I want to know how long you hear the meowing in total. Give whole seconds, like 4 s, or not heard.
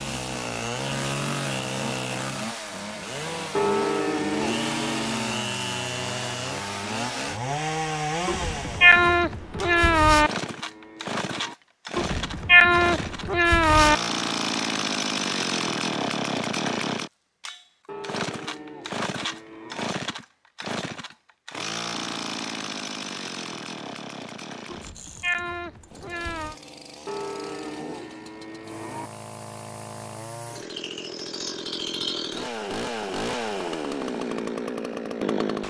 6 s.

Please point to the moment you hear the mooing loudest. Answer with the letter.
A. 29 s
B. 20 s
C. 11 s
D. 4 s
D.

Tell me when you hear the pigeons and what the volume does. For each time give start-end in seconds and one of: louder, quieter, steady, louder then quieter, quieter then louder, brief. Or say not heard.
not heard.